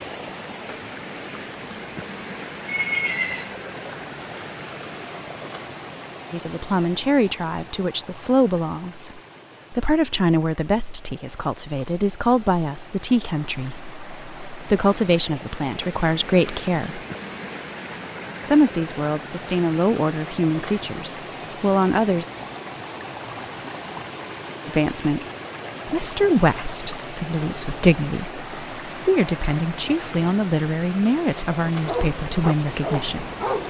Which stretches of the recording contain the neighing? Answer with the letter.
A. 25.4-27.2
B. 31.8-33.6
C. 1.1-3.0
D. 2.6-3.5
D.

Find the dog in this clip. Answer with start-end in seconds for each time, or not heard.
31.8-33.6.